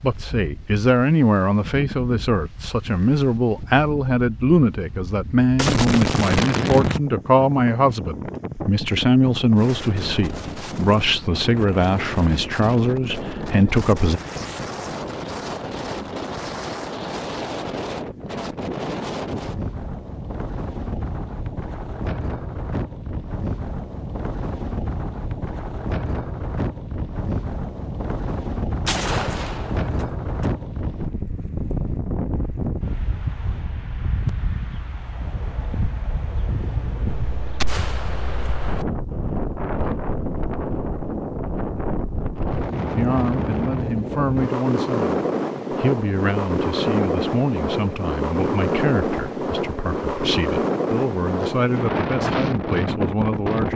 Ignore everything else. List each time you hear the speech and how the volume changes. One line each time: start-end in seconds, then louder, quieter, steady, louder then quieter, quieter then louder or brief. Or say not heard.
0.0-14.2 steady
43.0-53.7 steady.